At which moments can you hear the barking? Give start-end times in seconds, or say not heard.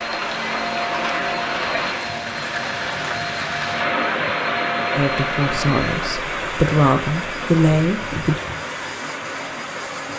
not heard.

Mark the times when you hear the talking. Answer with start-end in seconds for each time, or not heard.
5.0-8.4.